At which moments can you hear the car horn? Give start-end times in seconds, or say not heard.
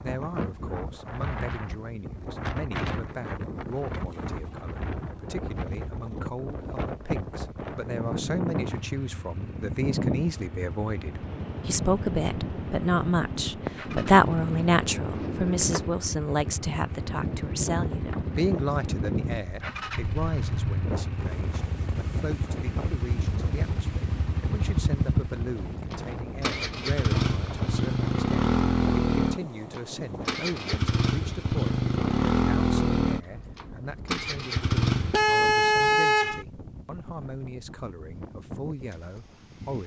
35.1-36.5.